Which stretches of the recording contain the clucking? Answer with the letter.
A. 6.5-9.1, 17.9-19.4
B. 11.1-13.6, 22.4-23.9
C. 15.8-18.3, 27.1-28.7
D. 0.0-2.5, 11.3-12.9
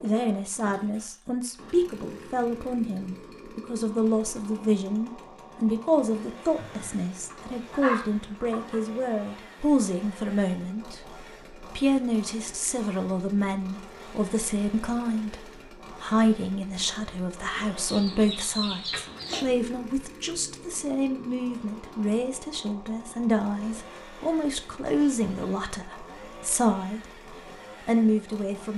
A.